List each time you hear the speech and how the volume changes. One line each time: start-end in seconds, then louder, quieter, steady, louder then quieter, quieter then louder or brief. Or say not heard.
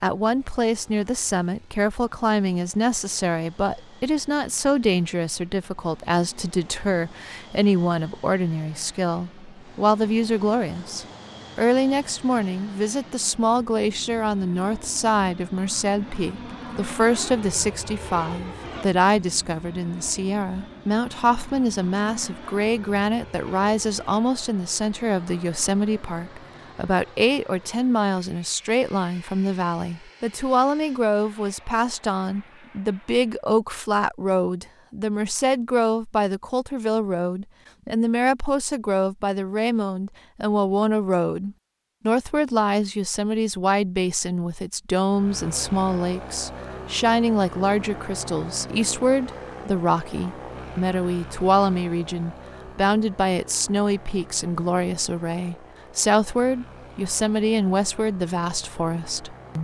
0.0-59.5 steady.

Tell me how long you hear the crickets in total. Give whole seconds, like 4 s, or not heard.
not heard.